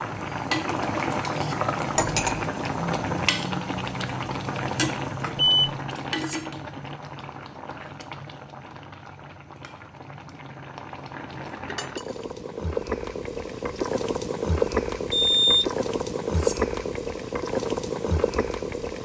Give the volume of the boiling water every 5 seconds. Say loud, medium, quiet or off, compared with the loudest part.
loud, medium, loud, loud.